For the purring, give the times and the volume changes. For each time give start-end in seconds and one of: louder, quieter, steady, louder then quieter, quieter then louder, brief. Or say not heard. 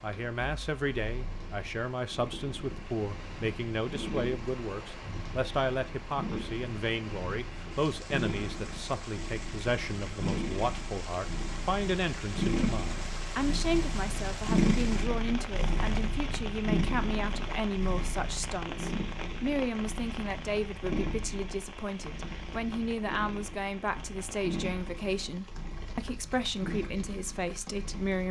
0.0-28.2 louder then quieter.